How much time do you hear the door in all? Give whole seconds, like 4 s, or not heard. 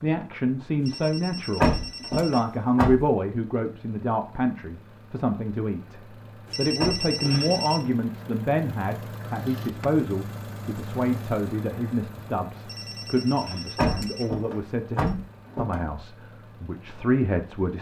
4 s.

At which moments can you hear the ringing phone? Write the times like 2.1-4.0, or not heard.
0.8-2.5, 6.5-7.8, 12.7-15.1.